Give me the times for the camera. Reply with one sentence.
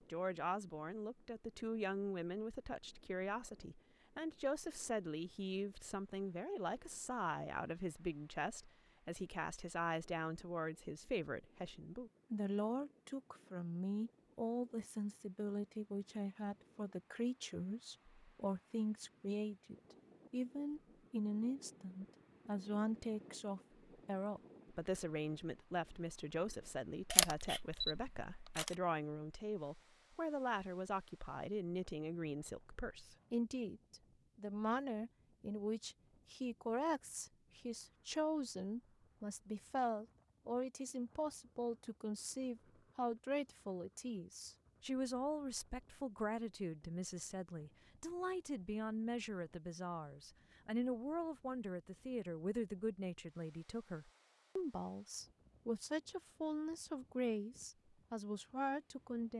The camera can be heard from 27.1 to 28.8 s.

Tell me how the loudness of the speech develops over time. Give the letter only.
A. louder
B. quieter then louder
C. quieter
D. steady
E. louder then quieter
D.